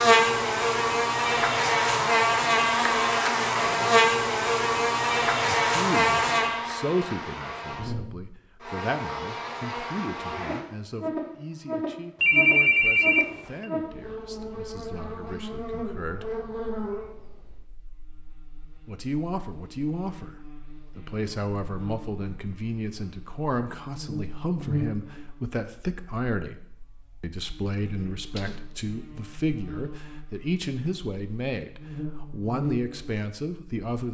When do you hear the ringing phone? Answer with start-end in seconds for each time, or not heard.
12.2-13.7.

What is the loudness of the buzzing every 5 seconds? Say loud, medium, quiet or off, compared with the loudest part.
loud, medium, medium, quiet, quiet, quiet, quiet.